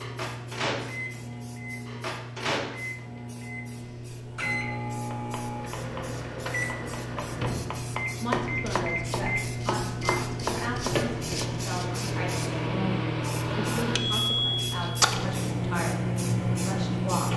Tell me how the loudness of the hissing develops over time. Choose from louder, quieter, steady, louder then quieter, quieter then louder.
louder.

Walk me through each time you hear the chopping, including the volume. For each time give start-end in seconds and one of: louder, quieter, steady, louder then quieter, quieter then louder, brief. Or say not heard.
5.1-11.9 louder.